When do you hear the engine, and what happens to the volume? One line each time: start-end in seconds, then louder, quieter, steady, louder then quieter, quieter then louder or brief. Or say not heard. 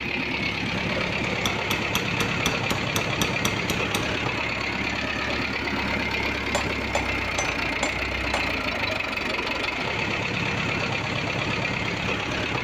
0.0-12.5 steady.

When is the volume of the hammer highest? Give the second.
3 s.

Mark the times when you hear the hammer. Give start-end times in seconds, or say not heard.
1.4-4.0, 6.5-8.4.